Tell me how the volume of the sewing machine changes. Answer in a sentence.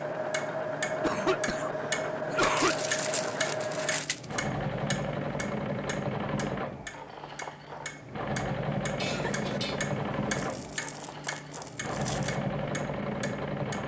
The volume of the sewing machine stays about the same.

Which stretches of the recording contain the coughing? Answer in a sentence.
You can hear the coughing from 0.8 to 2.8 s and from 8.9 to 9.8 s.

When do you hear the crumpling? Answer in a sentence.
You can hear the crumpling from 2.5 to 4.4 s and from 10.3 to 12.3 s.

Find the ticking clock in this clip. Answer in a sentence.
The ticking clock can be heard from 0.0 to 13.8 s.